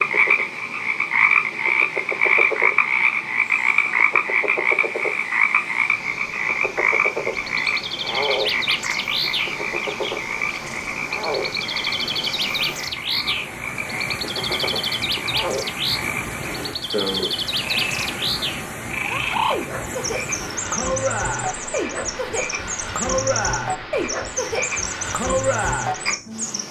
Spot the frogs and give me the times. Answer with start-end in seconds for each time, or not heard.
0.0-26.6.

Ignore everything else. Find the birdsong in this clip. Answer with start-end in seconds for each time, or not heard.
7.3-26.6.